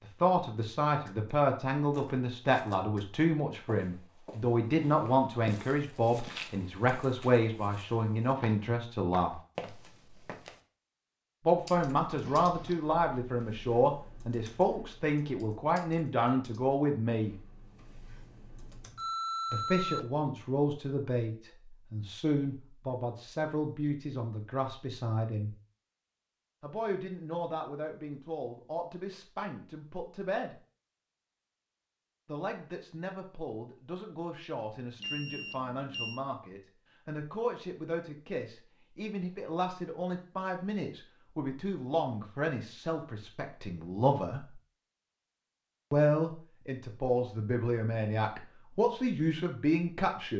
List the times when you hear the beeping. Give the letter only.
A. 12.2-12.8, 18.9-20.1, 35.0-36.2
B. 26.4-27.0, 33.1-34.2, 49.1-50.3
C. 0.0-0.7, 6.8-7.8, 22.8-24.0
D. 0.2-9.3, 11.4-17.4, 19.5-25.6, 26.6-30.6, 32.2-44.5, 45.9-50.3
A.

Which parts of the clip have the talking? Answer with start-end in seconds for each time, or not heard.
0.2-9.3, 11.4-17.4, 19.5-25.6, 26.6-30.6, 32.2-44.5, 45.9-50.3.